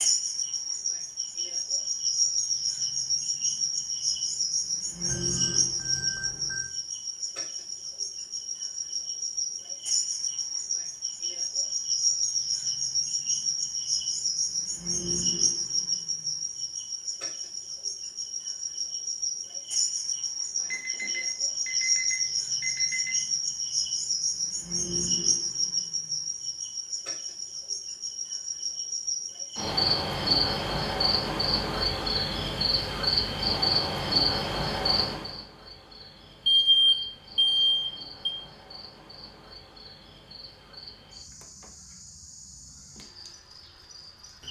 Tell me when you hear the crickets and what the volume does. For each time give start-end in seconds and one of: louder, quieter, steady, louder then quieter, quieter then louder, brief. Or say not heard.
0.0-44.4 quieter.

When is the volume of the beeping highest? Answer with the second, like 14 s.
37 s.